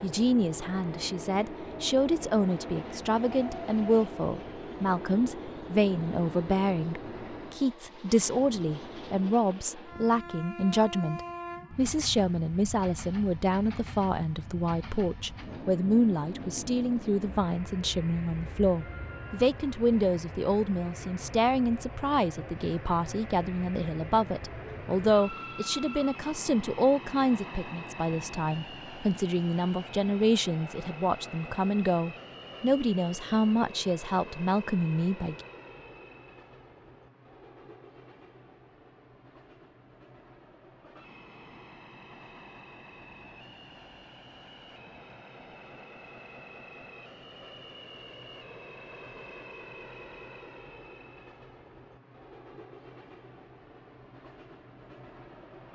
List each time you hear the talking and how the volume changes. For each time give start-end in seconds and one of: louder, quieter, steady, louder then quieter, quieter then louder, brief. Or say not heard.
0.0-35.5 steady.